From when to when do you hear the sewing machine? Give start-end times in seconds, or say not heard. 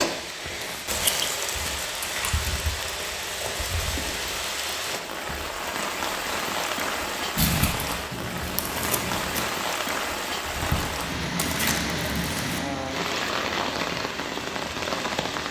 not heard.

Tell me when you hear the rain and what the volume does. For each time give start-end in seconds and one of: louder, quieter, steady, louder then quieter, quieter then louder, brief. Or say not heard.
0.0-15.4 steady.